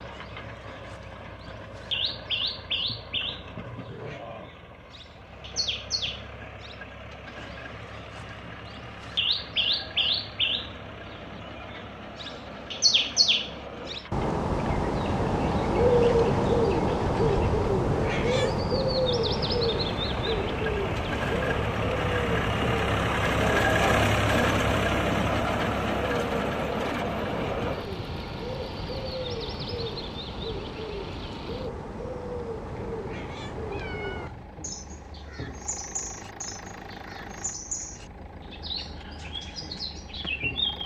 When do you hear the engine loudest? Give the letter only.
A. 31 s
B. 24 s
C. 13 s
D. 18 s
B.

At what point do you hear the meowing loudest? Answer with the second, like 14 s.
18 s.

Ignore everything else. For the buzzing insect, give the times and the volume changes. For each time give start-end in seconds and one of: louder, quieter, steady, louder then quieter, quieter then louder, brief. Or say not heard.
not heard.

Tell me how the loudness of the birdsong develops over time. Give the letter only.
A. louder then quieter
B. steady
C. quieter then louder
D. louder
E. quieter
A.